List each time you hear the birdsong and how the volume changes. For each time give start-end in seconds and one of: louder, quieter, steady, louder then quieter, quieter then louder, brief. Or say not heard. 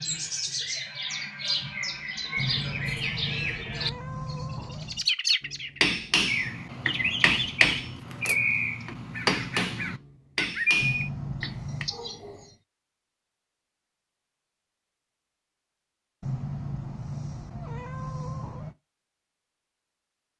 0.0-12.5 steady.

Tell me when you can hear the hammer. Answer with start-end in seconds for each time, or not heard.
5.5-11.8.